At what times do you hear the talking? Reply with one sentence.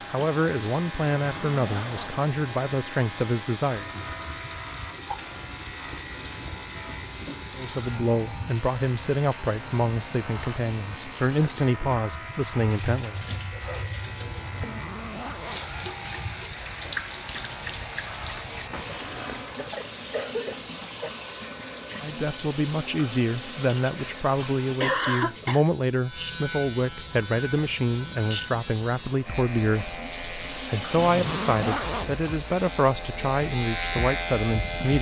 The talking can be heard from 0.1 to 3.9 s, from 7.5 to 13.2 s and from 22.0 to 34.9 s.